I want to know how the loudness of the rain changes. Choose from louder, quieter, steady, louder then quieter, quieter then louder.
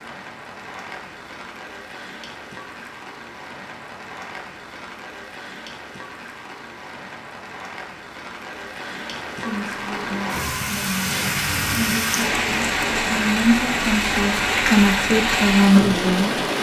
louder.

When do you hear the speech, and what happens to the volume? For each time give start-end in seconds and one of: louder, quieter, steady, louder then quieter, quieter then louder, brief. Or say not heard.
9.3-16.4 louder.